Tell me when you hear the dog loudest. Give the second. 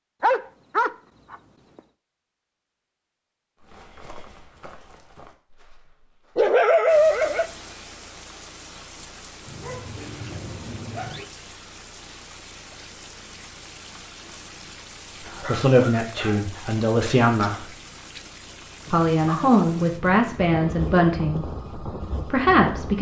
7 s.